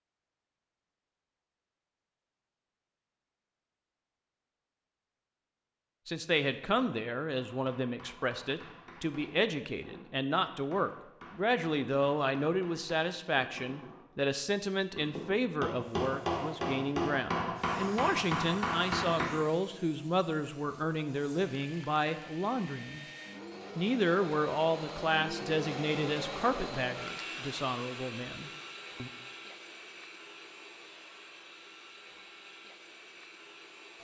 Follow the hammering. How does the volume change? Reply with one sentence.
The loudness of the hammering goes up.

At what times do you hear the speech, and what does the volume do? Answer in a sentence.
You can hear the speech from 6.0 to 23.1 s, at a steady volume; and from 23.8 to 29.1 s, getting quieter.